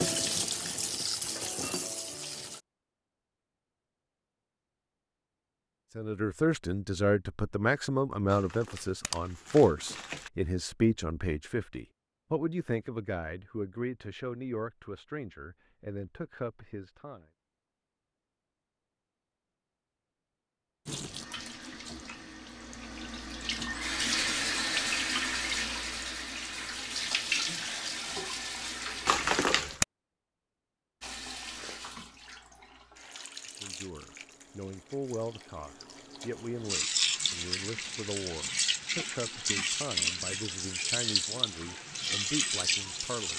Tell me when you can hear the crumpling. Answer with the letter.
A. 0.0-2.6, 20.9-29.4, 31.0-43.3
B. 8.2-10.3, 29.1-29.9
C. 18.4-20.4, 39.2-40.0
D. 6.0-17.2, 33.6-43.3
B.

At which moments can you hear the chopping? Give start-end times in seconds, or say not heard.
not heard.